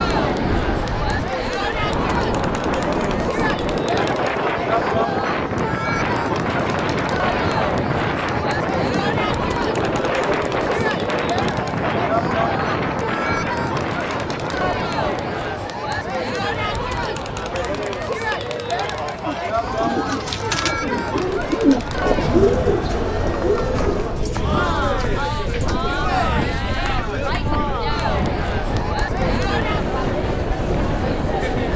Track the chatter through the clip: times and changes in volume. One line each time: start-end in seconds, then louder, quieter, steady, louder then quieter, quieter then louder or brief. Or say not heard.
0.0-31.7 steady.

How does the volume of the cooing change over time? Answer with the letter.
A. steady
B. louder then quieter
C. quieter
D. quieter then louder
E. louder
B.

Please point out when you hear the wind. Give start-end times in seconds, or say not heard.
0.0-31.7.